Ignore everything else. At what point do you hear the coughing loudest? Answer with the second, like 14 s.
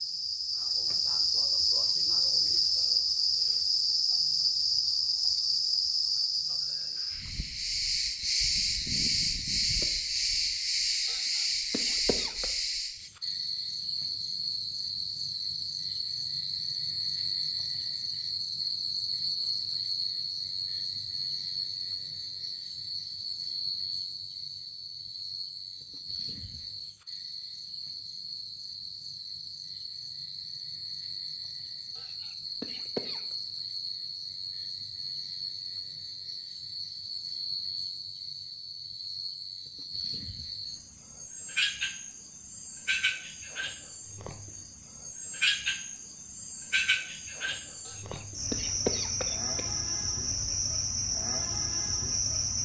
49 s.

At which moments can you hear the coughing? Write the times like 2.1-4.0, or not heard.
11.1-12.4, 31.9-33.2, 47.9-49.7.